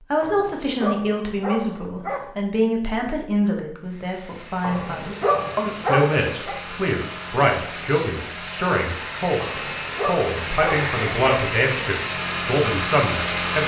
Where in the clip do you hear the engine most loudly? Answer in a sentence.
The loudest moment of the engine is at 13 seconds.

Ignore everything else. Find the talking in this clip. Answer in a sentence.
The talking can be heard from 0.1 to 13.6 s.